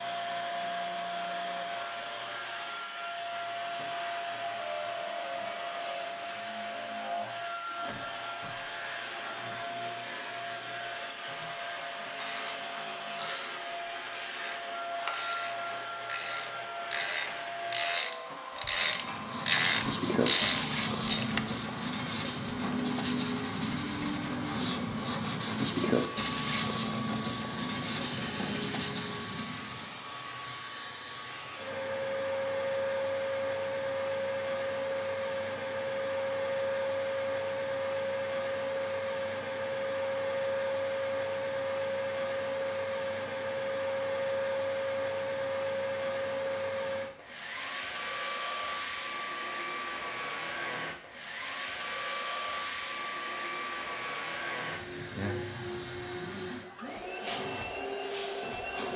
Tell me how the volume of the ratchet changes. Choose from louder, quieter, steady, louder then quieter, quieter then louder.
louder.